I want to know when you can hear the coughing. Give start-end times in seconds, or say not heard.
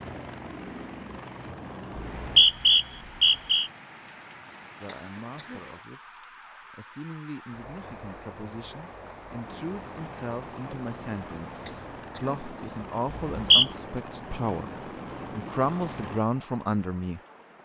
4.8-5.7, 11.7-12.4.